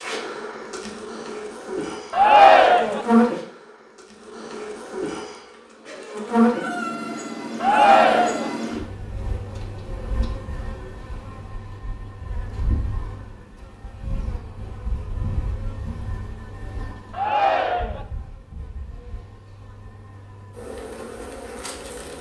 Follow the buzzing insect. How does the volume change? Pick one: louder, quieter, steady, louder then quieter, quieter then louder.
quieter.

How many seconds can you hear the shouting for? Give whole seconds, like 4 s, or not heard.
3 s.